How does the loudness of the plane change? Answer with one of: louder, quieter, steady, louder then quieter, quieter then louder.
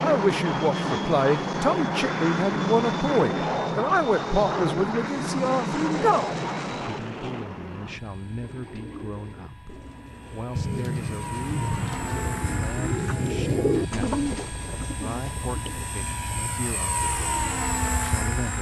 quieter then louder.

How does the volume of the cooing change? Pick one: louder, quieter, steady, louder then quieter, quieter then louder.
louder then quieter.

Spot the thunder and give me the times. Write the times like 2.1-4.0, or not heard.
10.6-14.0.